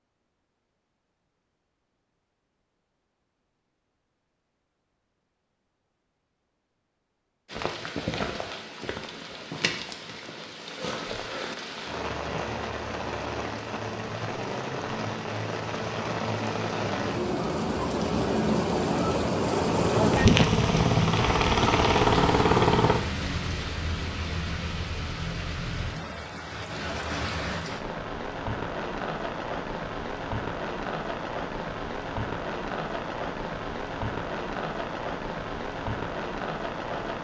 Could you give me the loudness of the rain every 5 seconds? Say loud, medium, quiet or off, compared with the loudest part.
off, medium, medium, loud, loud, medium, medium, medium.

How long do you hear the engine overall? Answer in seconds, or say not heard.
3 s.